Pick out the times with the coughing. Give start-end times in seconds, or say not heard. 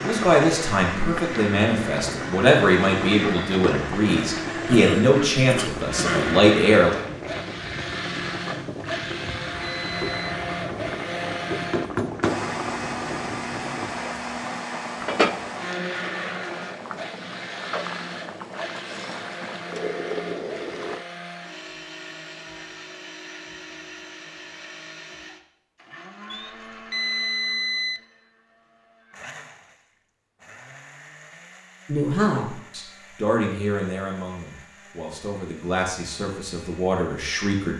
4.0-6.4.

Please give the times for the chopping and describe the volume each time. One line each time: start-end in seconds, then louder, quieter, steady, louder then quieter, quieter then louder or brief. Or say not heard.
not heard.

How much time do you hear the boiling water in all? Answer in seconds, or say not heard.
21 s.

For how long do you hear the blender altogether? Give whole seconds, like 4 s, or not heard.
38 s.